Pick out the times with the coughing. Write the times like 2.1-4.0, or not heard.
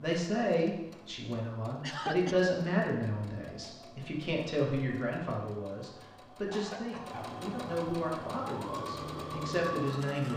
1.8-2.5, 6.5-7.4.